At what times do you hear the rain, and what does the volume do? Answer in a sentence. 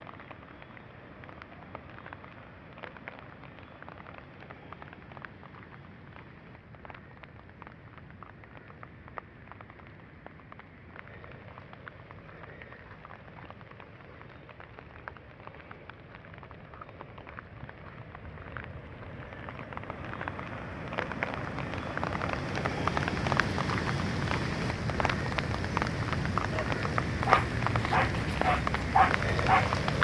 The rain can be heard from 0.0 to 29.9 s, getting louder.